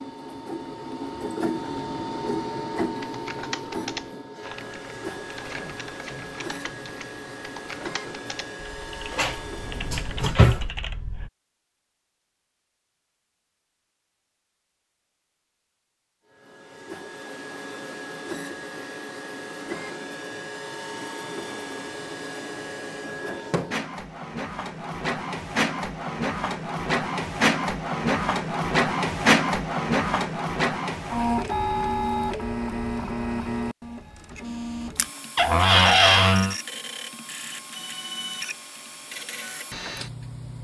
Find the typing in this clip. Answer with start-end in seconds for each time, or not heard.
2.9-11.3.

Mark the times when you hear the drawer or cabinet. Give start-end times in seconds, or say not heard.
9.1-10.7, 35.4-36.5.